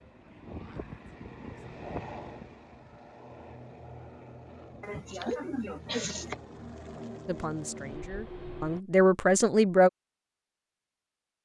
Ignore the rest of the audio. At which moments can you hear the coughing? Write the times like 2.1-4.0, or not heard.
4.8-6.3.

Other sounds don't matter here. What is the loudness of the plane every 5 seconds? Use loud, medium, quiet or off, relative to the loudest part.
loud, loud, off.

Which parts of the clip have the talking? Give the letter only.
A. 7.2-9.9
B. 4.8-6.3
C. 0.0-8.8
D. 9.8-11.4
A.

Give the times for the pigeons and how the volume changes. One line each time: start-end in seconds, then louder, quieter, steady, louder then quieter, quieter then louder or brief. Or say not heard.
not heard.